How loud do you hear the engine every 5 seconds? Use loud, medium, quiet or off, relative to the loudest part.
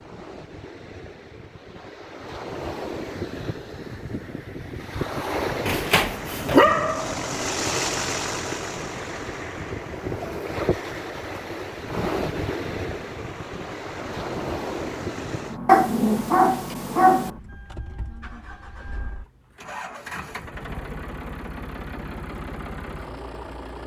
off, loud, medium, medium, medium.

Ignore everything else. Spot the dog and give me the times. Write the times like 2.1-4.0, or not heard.
5.7-7.1, 15.7-17.3.